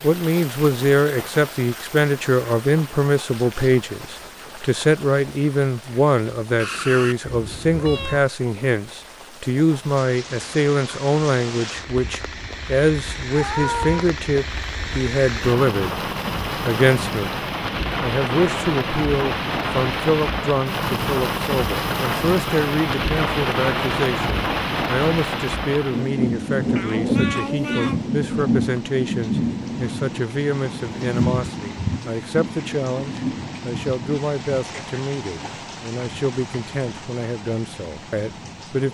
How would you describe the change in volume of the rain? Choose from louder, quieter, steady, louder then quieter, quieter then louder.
louder then quieter.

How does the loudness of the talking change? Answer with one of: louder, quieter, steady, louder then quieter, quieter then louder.
quieter.